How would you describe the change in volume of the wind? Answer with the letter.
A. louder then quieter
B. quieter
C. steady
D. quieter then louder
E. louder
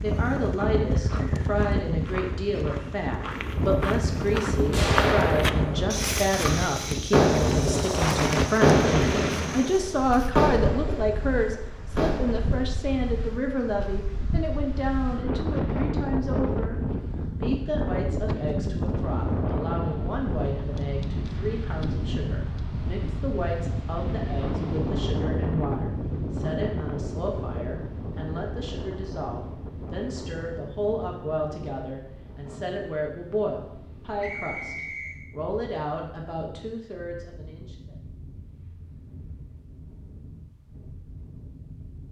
B.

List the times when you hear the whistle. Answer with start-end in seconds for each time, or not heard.
34.2-35.2.